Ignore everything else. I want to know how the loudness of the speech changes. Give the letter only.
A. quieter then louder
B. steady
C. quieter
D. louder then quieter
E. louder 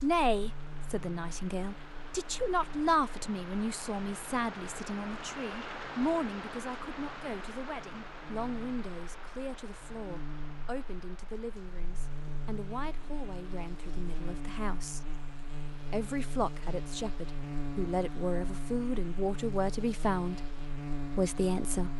A.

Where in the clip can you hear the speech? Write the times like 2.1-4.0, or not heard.
0.0-15.1, 15.9-21.9.